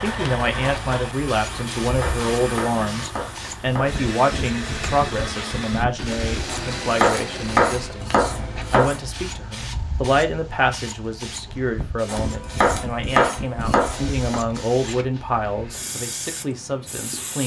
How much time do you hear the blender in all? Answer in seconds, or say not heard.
8 s.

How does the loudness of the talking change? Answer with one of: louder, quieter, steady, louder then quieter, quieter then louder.
steady.